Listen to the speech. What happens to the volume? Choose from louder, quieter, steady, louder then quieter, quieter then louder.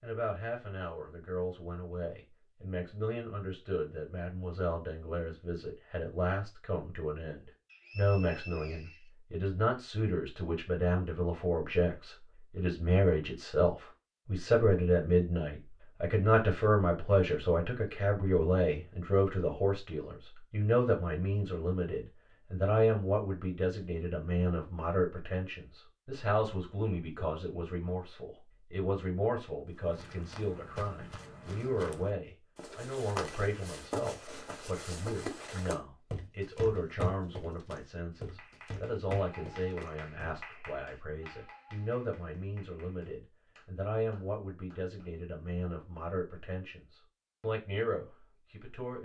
louder then quieter.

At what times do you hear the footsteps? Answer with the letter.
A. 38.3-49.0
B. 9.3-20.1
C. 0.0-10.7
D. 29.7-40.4
D.